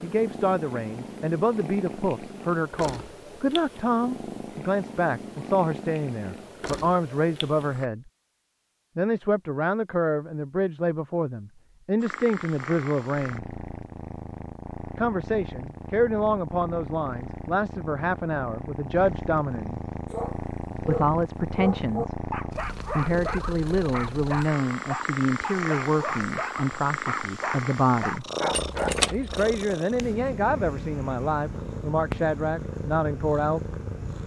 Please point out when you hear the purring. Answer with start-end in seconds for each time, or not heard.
0.0-7.9, 12.0-34.2.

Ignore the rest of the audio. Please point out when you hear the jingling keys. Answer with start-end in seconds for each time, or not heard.
28.5-29.5.